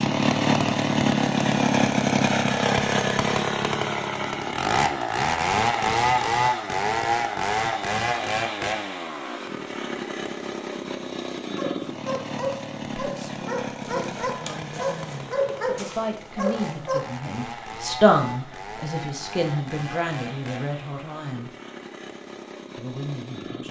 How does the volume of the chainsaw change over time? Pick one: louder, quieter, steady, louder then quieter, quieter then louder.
quieter.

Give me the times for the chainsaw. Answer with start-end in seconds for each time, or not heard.
0.0-23.6.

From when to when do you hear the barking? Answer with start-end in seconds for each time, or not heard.
11.6-17.1.